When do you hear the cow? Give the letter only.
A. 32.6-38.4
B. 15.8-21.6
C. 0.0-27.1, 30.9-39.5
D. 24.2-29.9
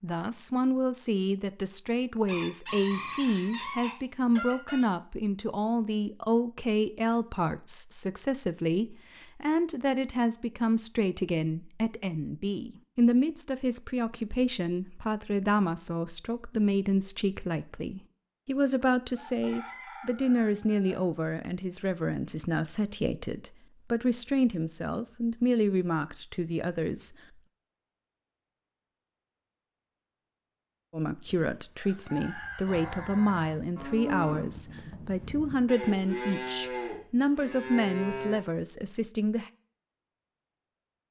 A.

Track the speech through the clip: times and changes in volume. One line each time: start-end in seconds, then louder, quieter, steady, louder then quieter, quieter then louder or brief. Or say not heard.
0.0-27.1 steady
30.9-39.5 steady.